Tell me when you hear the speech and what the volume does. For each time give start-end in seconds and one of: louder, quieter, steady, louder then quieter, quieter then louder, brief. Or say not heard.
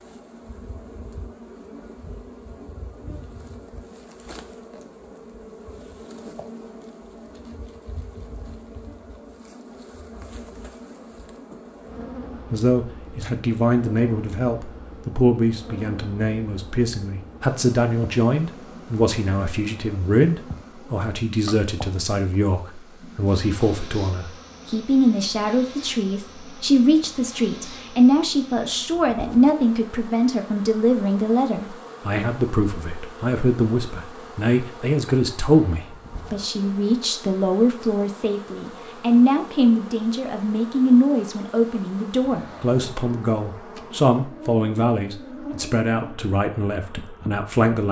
12.5-47.8 steady.